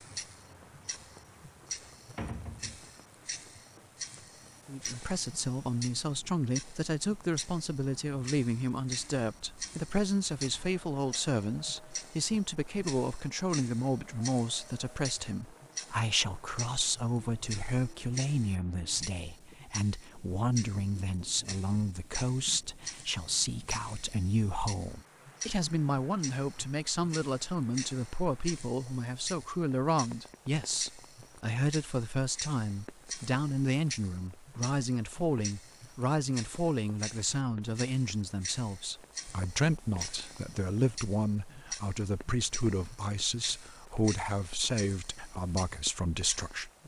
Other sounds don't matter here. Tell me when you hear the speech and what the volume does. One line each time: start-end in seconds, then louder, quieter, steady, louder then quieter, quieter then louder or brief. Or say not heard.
4.7-46.7 steady.